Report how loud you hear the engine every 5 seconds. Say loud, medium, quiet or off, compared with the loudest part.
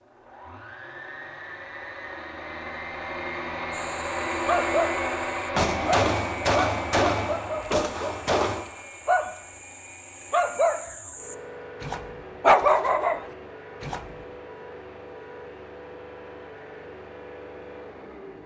loud, loud, medium, medium.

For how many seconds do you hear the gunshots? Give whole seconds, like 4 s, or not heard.
3 s.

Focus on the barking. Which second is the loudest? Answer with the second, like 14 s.
13 s.